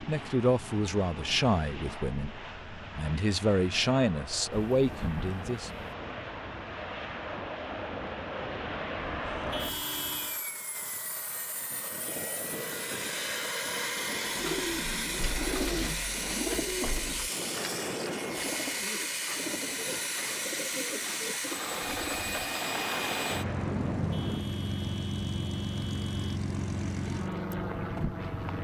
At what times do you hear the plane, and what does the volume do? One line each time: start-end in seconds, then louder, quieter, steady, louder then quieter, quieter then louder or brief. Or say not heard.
0.0-28.5 louder.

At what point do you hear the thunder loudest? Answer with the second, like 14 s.
24 s.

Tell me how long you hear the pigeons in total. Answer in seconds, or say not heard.
8 s.